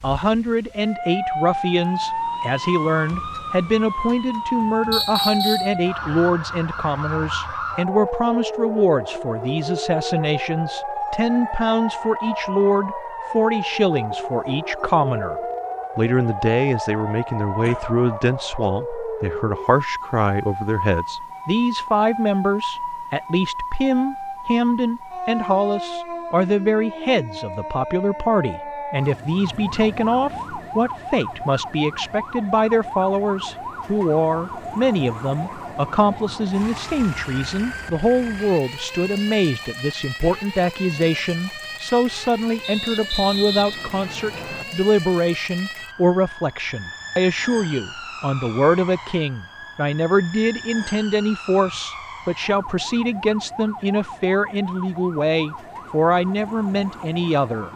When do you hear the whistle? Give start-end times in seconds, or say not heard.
4.9-5.8, 42.6-44.6.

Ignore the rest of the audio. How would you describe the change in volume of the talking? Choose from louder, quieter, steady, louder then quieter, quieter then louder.
steady.